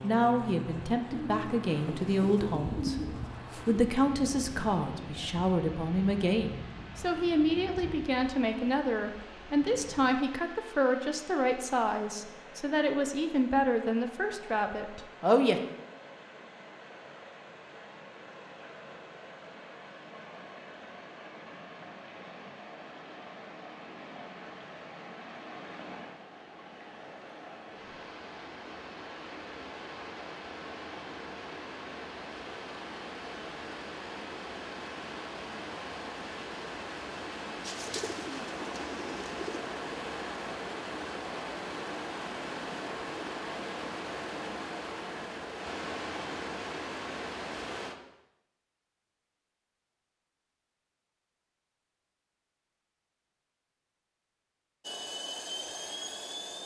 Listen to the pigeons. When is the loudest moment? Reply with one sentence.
The loudest moment of the pigeons is at 3 seconds.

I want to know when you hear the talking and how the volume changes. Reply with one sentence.
The talking can be heard from 0.0 to 15.6 s, at a steady volume.